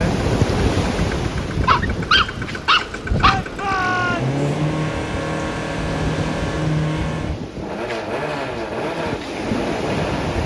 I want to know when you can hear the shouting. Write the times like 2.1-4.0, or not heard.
3.2-4.4.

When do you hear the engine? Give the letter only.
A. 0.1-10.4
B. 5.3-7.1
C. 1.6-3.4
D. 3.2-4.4
A.